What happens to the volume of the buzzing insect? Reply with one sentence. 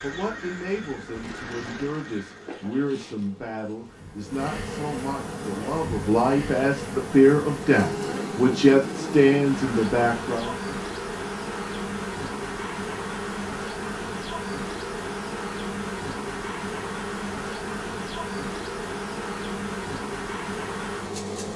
The volume of the buzzing insect goes up.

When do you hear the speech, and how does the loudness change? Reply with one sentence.
The speech can be heard from 0.0 to 10.6 s, getting louder.